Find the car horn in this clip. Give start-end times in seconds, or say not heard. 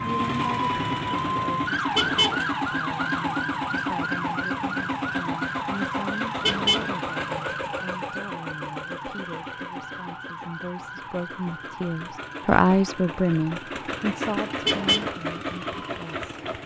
1.9-2.4, 6.4-6.9, 14.7-15.1.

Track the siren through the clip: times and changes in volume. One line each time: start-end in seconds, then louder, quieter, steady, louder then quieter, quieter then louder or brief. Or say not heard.
0.0-16.6 quieter.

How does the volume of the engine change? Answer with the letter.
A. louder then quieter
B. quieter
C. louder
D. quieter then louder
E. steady
D.